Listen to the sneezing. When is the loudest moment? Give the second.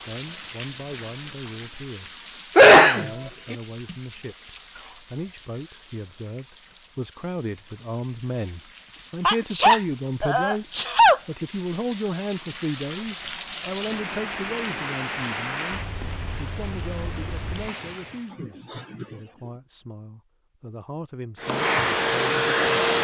3 s.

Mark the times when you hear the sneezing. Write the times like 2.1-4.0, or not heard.
2.5-3.5, 9.2-11.2, 18.3-19.5.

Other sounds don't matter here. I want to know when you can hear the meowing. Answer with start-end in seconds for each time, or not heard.
not heard.